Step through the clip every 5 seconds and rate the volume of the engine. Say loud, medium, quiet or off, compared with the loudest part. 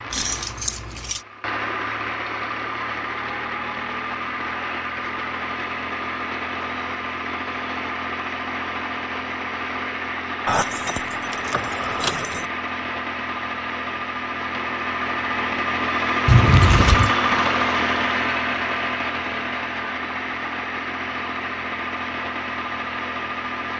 medium, medium, medium, loud, medium.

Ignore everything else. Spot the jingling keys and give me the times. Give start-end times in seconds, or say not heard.
0.1-1.2, 10.4-12.5, 16.2-17.1.